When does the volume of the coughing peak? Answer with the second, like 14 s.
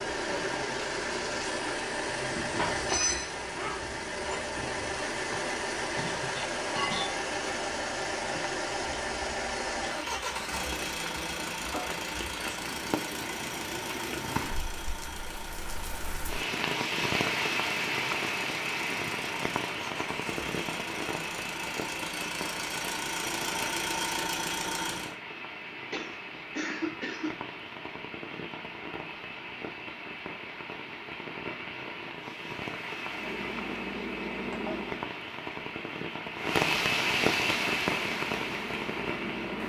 27 s.